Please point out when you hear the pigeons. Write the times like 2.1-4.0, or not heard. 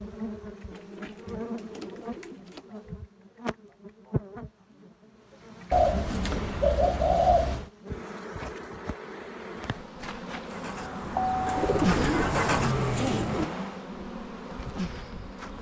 0.7-2.6, 5.7-7.7, 11.4-13.4.